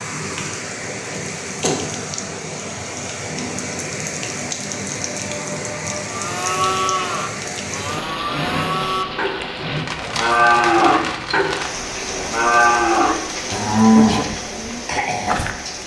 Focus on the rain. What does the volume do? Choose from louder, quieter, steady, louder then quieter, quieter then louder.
steady.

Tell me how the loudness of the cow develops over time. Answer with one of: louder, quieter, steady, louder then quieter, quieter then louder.
louder.